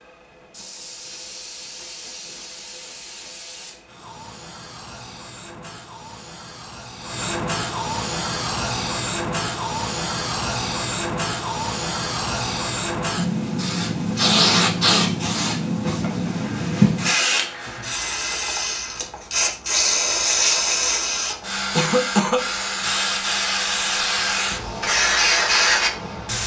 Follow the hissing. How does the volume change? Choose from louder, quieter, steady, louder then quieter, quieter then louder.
louder.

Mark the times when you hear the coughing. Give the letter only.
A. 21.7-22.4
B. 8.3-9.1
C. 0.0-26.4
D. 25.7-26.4
A.